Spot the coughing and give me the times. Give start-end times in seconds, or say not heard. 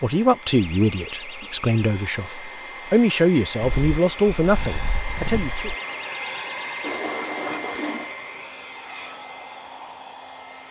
not heard.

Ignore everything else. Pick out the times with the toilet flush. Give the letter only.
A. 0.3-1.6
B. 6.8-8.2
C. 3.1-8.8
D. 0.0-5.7
B.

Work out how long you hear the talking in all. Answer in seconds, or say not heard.
6 s.